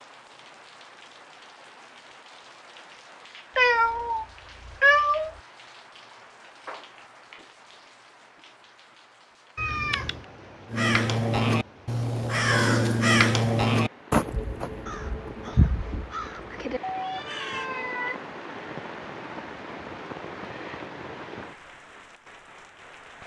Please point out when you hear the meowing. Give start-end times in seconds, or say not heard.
3.5-5.3, 9.6-10.2, 16.8-18.2.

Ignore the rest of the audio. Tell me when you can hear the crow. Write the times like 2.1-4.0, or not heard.
10.7-17.7.